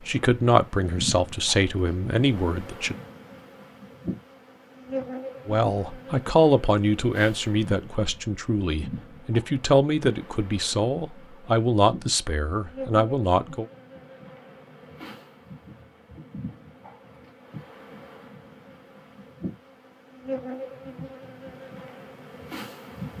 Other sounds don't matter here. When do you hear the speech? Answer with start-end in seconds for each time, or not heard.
0.1-3.0, 5.5-13.7.